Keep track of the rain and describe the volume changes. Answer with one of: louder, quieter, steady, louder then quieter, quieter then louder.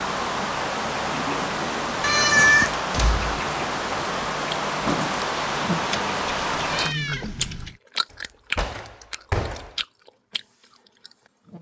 steady.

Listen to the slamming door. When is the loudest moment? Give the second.
9 s.